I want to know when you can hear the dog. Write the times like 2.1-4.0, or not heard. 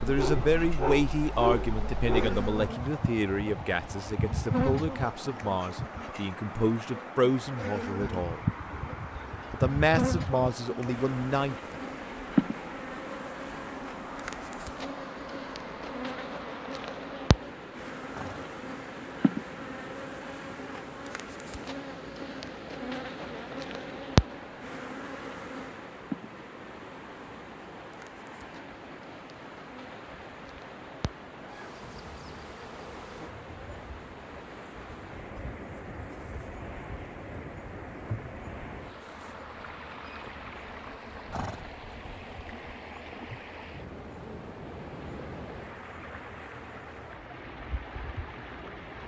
0.0-2.5.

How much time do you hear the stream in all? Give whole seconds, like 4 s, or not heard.
49 s.